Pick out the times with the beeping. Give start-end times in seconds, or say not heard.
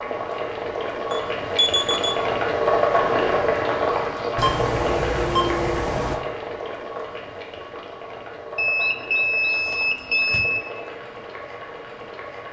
1.1-2.2, 4.3-6.2, 8.6-10.6.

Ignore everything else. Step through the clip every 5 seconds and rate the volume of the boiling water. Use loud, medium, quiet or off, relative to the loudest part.
loud, medium, quiet.